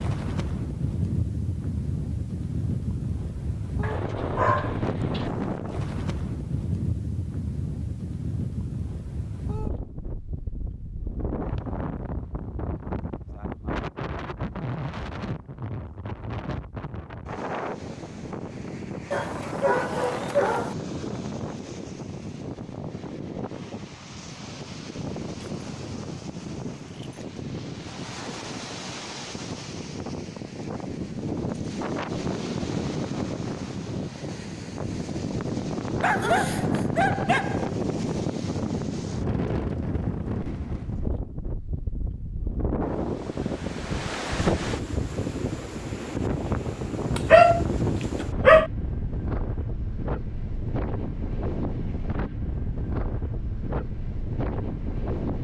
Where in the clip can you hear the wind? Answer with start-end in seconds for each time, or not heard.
0.0-55.3.